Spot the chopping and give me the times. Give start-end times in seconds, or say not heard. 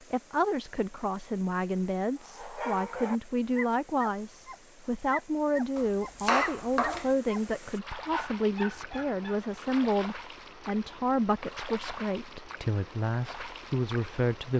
5.8-7.1.